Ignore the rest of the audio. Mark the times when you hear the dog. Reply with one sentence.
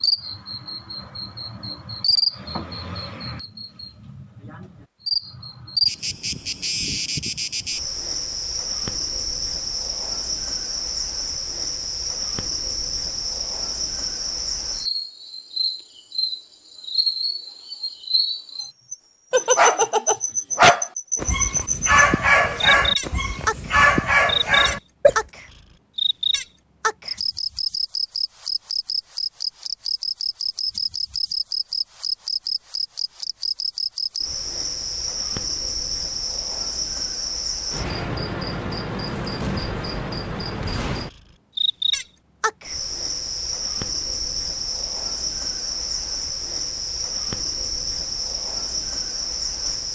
You can hear the dog from 19.3 to 25.2 s.